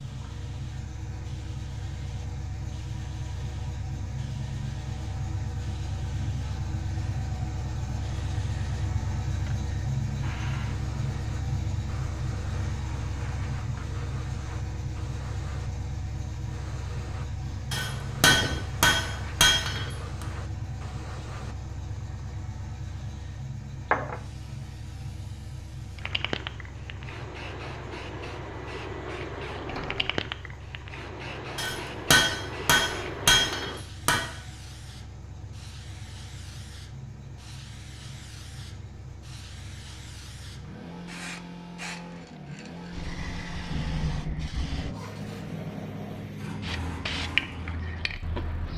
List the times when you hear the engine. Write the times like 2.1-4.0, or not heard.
0.0-48.7.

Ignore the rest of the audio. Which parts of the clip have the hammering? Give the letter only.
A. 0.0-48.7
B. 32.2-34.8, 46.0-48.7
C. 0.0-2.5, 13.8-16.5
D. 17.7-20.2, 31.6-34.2
D.